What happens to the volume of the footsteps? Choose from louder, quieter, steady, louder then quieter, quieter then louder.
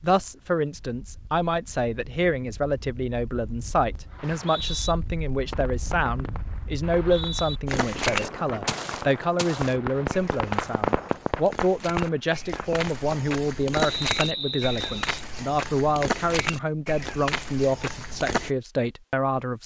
quieter then louder.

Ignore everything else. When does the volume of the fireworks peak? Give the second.
11 s.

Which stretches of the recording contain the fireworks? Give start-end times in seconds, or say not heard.
4.0-4.5, 5.4-13.1.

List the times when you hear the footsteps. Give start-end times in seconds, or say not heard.
7.7-18.5.